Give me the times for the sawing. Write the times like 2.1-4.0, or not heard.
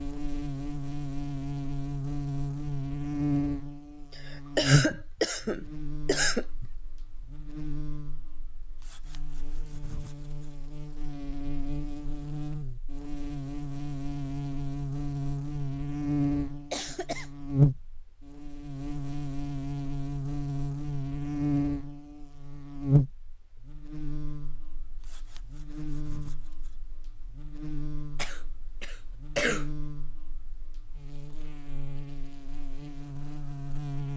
8.8-10.6, 25.0-26.8.